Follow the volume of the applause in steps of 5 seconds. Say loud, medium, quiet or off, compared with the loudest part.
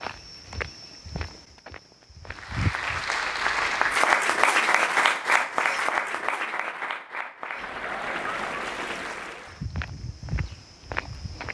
loud, medium, off.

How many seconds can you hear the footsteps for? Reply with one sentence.
The footsteps can be heard for 5 seconds in total.